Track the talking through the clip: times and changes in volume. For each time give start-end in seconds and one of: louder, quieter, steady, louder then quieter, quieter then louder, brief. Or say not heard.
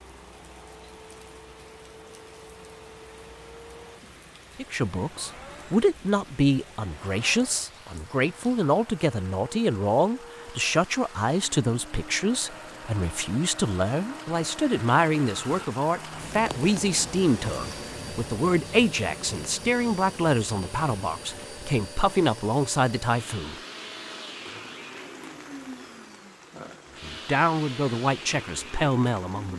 4.5-23.6 steady
27.0-29.5 brief.